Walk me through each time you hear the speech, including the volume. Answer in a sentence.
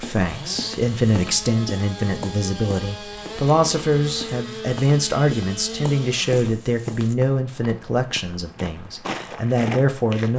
The speech can be heard from 0.0 to 10.3 s, at a steady volume.